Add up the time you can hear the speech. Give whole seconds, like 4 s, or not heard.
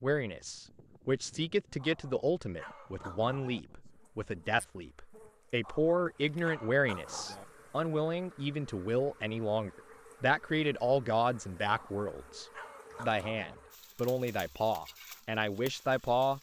16 s.